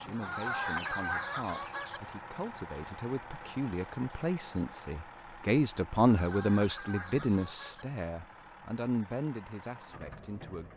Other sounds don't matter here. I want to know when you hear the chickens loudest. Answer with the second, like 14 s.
1 s.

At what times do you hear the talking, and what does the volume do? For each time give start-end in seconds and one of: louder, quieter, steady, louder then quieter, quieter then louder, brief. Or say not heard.
0.0-10.7 louder then quieter.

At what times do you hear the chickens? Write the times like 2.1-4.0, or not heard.
0.2-2.0, 6.0-7.8.